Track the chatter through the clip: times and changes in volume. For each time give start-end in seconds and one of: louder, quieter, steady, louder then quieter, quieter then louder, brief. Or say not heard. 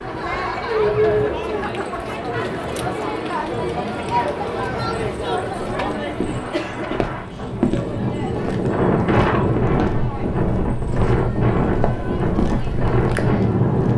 0.0-13.9 quieter.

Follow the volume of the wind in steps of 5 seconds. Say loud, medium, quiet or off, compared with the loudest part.
quiet, loud, loud.